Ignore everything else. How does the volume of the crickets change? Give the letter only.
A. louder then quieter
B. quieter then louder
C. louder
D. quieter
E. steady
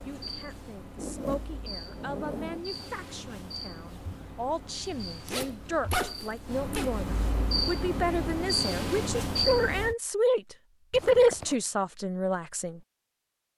C.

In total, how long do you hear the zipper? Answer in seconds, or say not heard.
4 s.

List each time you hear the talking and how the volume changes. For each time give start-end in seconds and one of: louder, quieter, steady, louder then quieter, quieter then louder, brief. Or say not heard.
0.0-12.8 louder.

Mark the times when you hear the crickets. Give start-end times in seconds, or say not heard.
0.0-9.9.